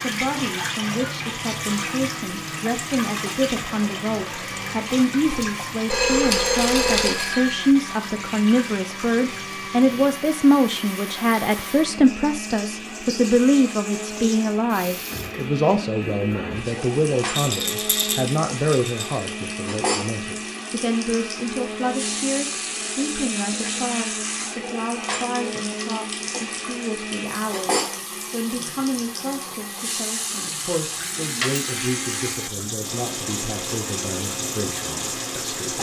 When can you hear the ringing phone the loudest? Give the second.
6 s.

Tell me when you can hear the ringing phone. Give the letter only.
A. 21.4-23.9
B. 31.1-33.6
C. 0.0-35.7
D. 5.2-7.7
D.